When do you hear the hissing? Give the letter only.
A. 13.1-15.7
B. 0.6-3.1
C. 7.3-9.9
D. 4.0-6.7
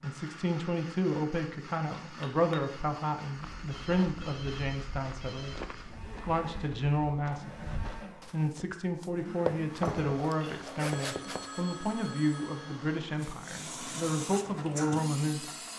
A.